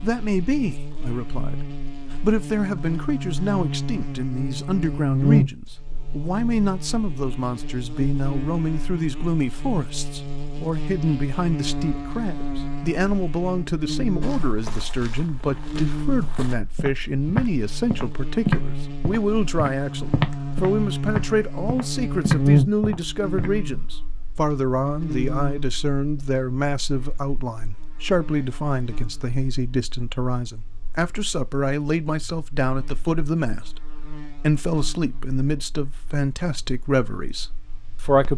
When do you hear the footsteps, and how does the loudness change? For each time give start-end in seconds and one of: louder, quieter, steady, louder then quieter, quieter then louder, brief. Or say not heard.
14.2-23.5 louder.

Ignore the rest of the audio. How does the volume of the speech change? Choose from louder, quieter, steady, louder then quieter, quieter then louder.
steady.